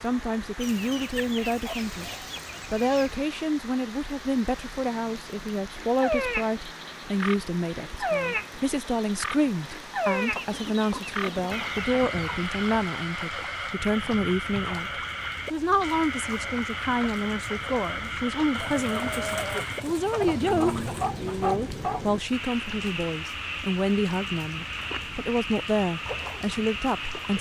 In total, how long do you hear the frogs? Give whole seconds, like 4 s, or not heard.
22 s.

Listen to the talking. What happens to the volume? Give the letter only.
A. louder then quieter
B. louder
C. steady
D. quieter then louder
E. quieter
C.